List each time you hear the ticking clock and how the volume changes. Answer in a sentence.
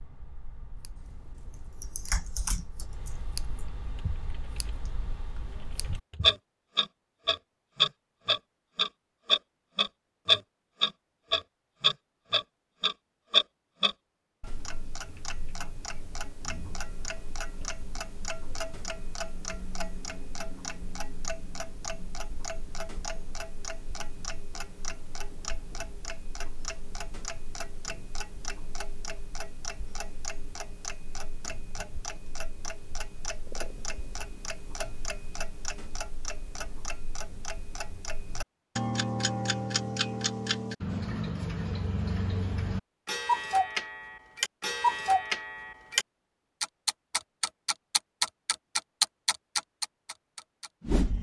The ticking clock can be heard from 0.0 to 51.1 s, getting quieter then louder.